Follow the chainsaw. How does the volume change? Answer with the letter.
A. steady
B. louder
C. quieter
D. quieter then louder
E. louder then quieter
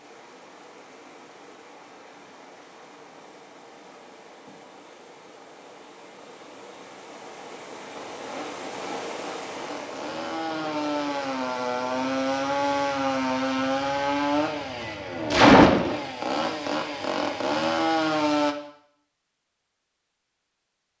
E.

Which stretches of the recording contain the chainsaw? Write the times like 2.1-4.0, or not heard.
8.0-18.6.